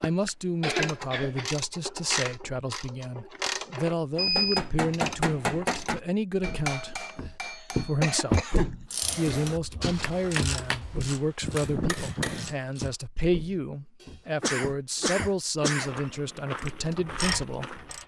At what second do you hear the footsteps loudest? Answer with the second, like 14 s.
8 s.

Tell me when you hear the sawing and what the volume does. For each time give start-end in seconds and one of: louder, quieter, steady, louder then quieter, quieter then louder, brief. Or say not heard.
not heard.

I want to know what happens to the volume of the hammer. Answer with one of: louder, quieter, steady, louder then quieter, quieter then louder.
quieter then louder.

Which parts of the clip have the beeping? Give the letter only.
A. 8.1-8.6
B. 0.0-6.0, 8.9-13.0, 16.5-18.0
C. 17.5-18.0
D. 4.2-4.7
D.